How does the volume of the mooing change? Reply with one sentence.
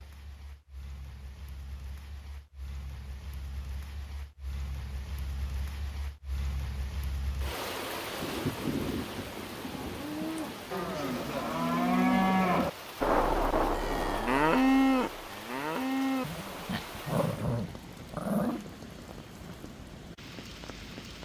The loudness of the mooing goes up, then down.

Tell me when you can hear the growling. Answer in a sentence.
The growling can be heard from 16.2 to 18.6 s.